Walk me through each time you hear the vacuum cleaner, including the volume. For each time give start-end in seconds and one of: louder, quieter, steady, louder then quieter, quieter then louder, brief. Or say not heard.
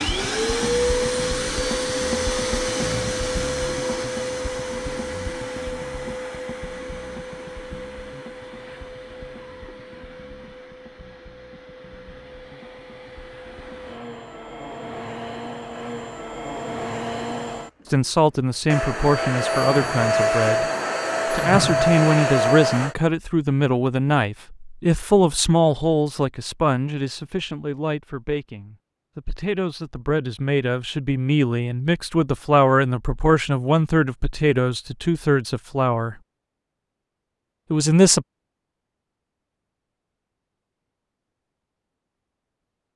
0.0-22.9 quieter then louder.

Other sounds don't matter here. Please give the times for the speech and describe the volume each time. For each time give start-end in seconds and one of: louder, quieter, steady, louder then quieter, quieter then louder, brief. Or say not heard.
17.9-20.6 brief
21.2-36.1 quieter then louder
37.7-38.2 brief.